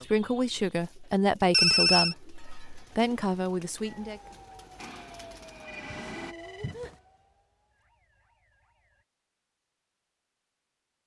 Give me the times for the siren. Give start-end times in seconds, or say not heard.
3.8-9.1.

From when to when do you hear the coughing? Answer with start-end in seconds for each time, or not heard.
not heard.